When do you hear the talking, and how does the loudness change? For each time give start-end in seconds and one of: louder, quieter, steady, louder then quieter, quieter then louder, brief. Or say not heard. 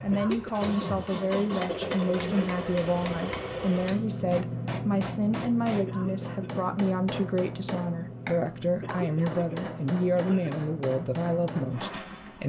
0.0-12.4 steady.